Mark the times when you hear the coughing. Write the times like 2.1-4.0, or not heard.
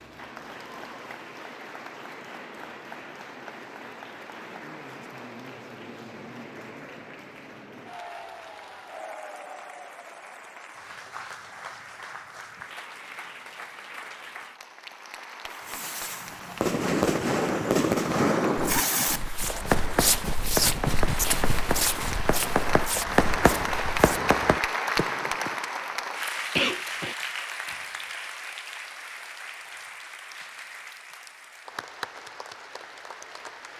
26.6-27.1.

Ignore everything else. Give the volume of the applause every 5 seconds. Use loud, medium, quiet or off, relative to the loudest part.
medium, medium, medium, medium, loud, loud, medium.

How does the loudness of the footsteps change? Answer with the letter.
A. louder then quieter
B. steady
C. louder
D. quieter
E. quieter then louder
A.